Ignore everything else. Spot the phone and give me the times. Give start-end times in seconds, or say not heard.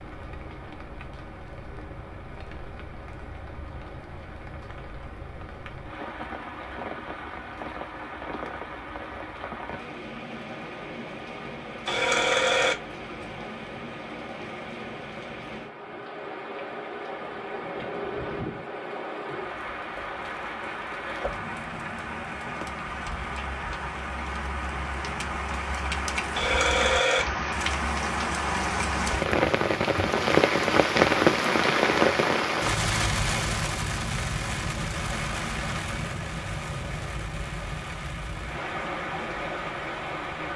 11.8-12.8, 26.4-27.2.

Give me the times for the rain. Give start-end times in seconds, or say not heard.
0.0-40.5.